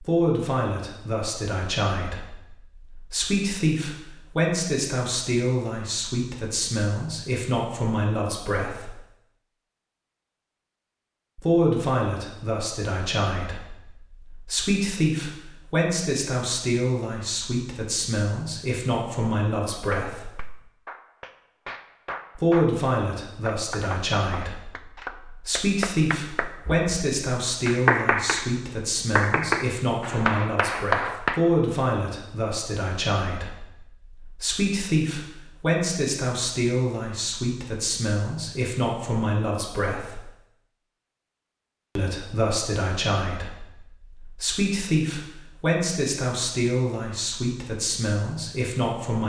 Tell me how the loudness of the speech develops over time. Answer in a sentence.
The volume of the speech stays about the same.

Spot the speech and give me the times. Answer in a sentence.
You can hear the speech from 0.0 to 8.9 s, from 11.3 to 20.3 s, from 22.4 to 40.2 s and from 42.0 to 49.2 s.